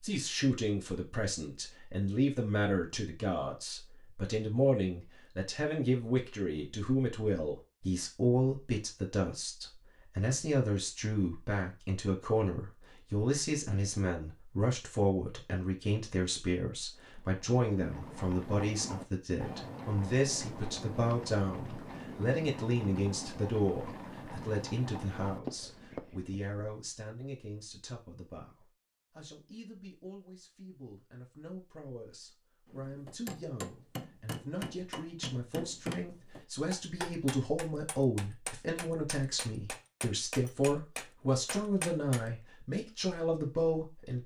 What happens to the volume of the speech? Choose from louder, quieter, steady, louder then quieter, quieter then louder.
quieter then louder.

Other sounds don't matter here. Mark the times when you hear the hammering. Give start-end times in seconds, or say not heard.
32.6-42.3.